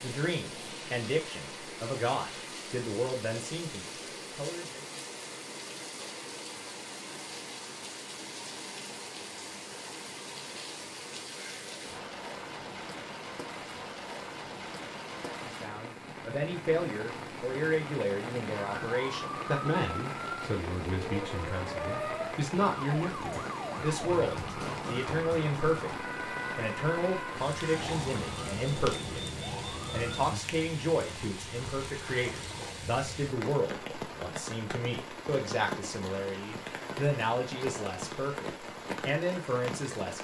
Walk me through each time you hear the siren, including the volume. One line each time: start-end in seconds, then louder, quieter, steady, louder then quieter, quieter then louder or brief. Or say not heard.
18.5-30.4 steady.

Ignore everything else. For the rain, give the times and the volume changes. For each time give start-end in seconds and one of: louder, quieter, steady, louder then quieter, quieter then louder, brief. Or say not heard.
0.0-40.1 steady.